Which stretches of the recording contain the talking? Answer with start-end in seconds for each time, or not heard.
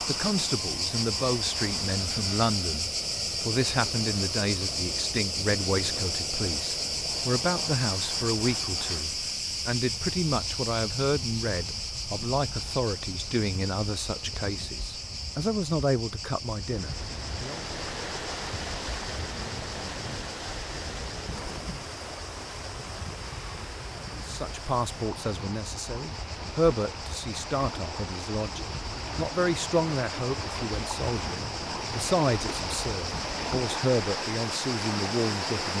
0.0-17.6, 24.1-35.7.